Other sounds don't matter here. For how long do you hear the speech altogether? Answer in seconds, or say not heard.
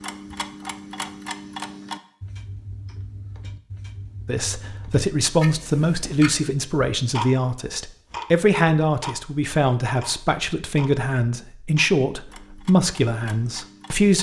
10 s.